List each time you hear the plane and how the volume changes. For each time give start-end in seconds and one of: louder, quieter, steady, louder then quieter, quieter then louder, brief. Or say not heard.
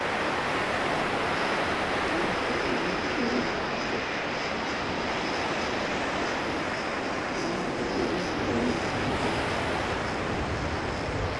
0.1-11.3 steady.